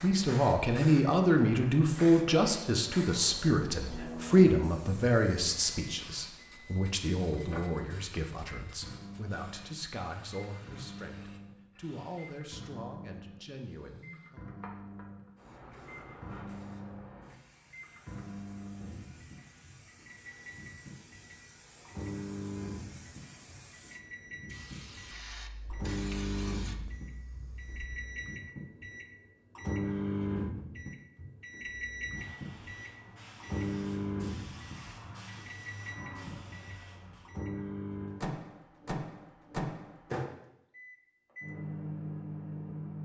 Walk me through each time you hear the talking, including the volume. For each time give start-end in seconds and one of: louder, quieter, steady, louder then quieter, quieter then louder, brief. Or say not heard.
0.0-14.4 quieter.